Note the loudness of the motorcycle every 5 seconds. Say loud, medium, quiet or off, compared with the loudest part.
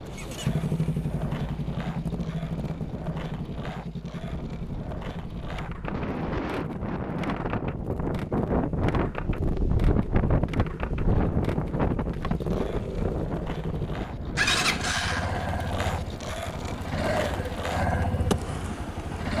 loud, medium, loud, loud.